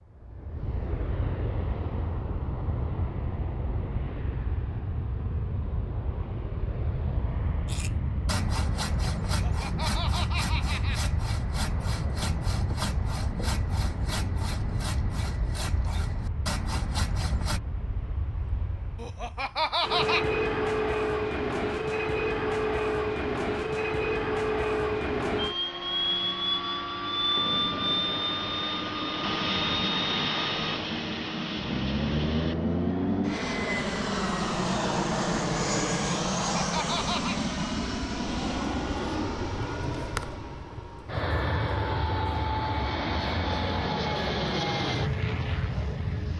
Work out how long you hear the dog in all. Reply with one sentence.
You can't hear the dog here.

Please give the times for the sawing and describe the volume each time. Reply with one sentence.
You can hear the sawing from 7.7 to 17.6 s, at a steady volume.